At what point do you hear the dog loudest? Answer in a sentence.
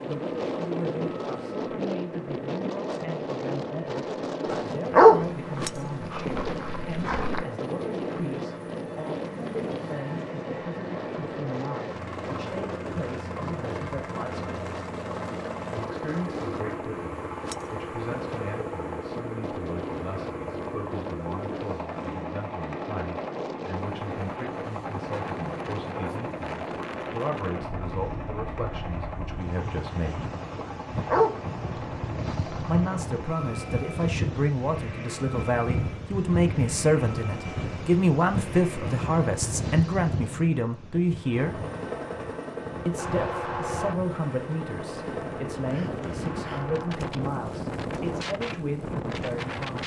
The loudest moment of the dog is at 5 seconds.